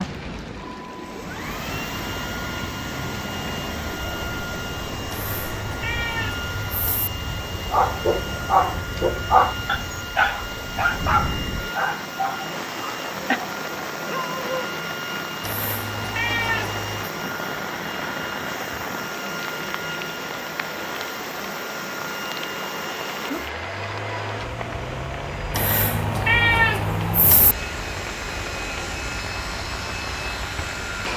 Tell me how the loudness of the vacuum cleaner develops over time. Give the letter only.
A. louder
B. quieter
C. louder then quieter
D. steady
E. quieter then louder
D.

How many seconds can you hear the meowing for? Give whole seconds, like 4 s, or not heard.
6 s.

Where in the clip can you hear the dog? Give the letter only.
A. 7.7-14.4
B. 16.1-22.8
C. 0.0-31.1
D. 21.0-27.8
A.